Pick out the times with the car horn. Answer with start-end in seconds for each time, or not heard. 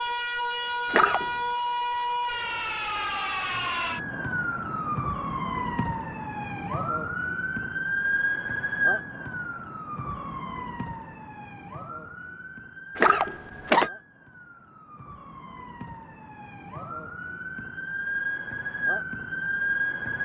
not heard.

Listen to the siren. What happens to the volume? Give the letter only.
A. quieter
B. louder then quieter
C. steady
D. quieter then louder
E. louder
D.